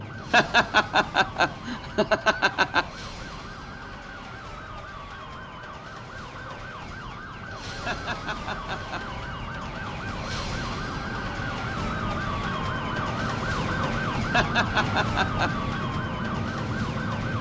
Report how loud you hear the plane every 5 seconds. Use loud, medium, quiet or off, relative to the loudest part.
quiet, quiet, loud, loud.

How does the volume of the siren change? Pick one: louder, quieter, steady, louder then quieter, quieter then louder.
louder.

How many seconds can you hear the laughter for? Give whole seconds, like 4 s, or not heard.
5 s.